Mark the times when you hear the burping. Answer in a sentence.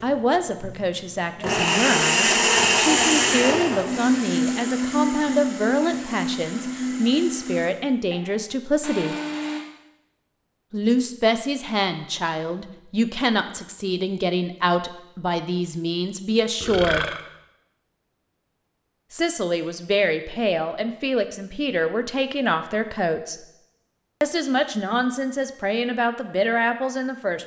The burping can be heard from 16.6 to 17.2 s.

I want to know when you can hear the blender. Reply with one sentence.
You can hear the blender from 0.0 to 9.6 s.